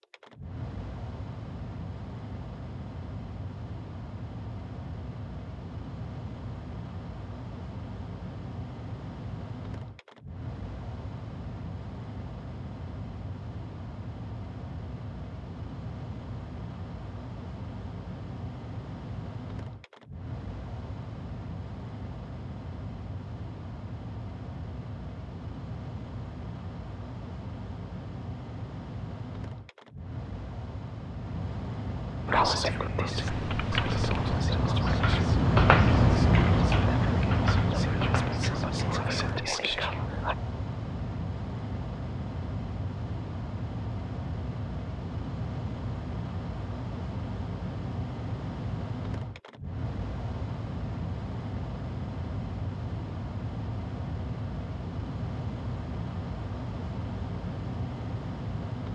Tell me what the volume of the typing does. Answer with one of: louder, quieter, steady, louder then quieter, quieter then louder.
louder then quieter.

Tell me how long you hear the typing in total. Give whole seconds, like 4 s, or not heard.
6 s.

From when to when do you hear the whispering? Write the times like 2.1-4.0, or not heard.
32.2-40.4.